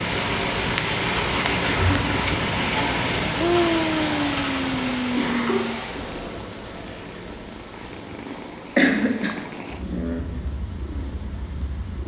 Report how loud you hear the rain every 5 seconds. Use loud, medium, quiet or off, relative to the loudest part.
loud, medium, quiet.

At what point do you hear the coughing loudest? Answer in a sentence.
The loudest moment of the coughing is at 9 seconds.